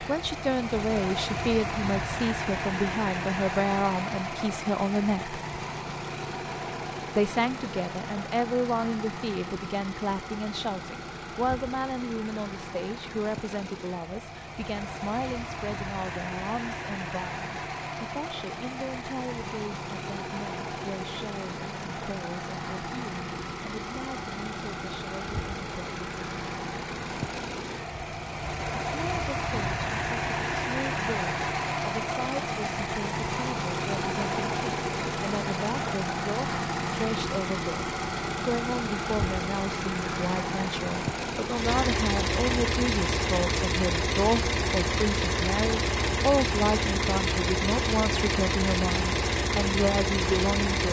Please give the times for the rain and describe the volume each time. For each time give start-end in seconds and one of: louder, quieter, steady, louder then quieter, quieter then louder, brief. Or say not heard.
not heard.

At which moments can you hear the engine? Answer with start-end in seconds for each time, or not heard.
0.0-50.8.